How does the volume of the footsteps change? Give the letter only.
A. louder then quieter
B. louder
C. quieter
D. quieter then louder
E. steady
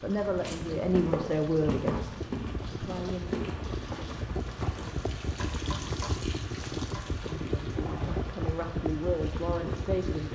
C.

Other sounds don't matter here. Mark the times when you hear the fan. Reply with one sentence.
The fan can be heard from 0.0 to 10.3 s.